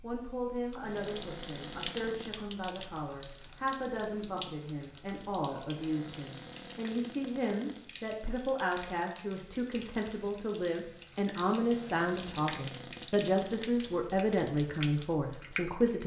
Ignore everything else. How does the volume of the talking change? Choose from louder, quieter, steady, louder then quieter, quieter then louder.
louder.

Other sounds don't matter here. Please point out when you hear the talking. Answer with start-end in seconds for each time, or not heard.
0.0-16.0.